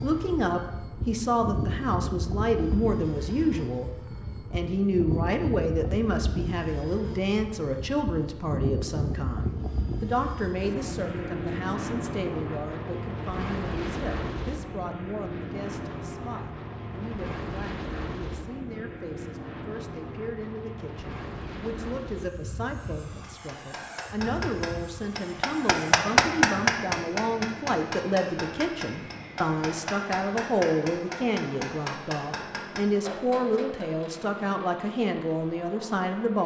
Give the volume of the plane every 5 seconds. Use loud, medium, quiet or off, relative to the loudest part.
loud, loud, loud, loud, medium, medium, medium, medium.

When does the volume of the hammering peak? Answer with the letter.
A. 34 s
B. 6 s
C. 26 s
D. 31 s
C.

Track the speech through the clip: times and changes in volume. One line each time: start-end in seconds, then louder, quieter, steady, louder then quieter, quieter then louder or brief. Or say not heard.
0.0-36.4 quieter then louder.